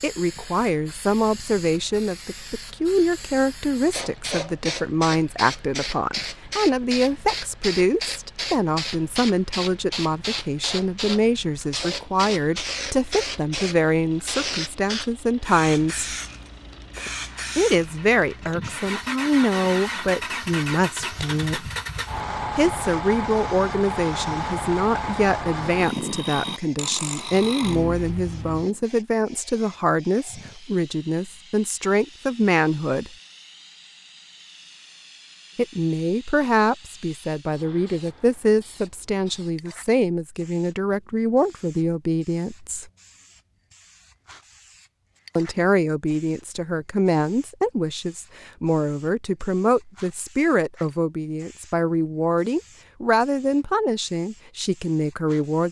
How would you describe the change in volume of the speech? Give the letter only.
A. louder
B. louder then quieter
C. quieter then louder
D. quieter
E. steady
E.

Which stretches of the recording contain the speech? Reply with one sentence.
The speech can be heard from 0.0 to 16.1 s, from 17.6 to 21.7 s, from 22.6 to 33.1 s, from 35.5 to 42.9 s and from 45.4 to 55.6 s.